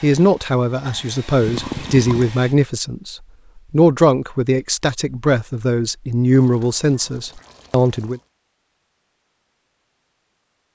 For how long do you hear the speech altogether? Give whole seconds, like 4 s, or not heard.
8 s.